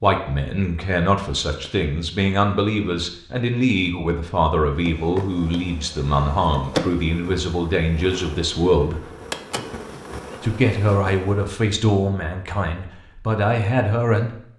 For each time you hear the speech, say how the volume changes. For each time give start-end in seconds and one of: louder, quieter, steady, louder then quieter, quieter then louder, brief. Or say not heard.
0.0-9.1 steady
10.4-14.4 quieter then louder.